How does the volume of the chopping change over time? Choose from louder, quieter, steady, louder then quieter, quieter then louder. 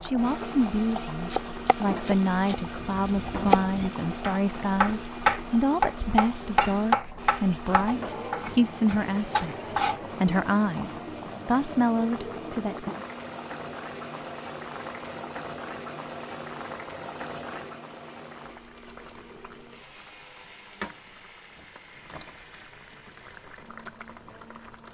louder then quieter.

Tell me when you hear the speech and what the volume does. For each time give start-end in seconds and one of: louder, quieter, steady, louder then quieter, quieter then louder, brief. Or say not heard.
0.0-9.6 steady
10.2-12.8 brief.